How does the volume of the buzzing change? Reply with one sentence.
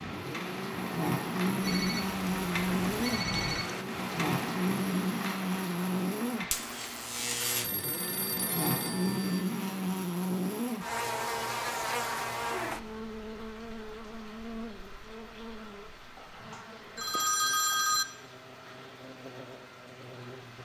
The loudness of the buzzing goes down.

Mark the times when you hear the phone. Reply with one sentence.
The phone can be heard from 1.6 to 3.6 s, from 7.5 to 9.4 s and from 16.1 to 18.1 s.